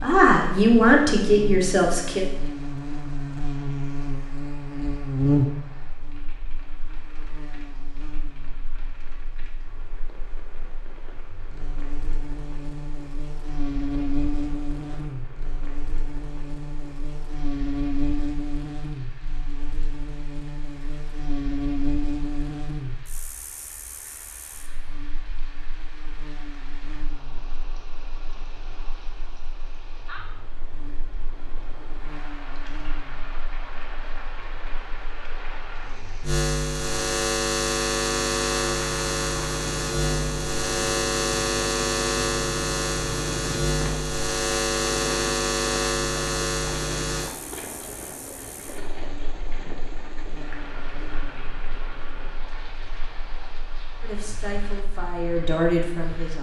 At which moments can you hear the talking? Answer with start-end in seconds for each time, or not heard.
0.0-2.2, 54.0-56.3.